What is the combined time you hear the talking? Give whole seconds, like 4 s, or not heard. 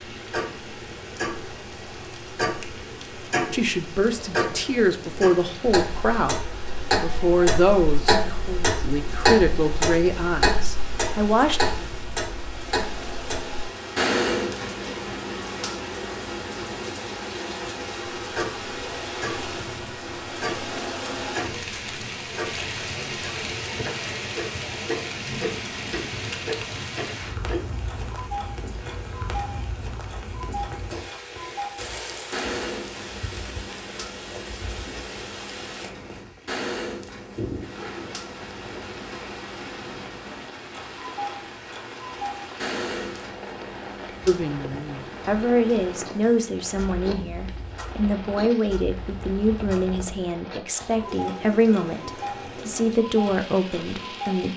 18 s.